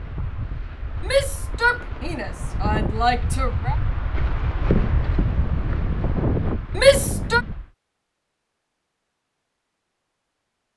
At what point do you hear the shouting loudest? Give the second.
7 s.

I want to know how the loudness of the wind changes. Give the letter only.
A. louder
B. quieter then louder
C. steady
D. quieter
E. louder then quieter
A.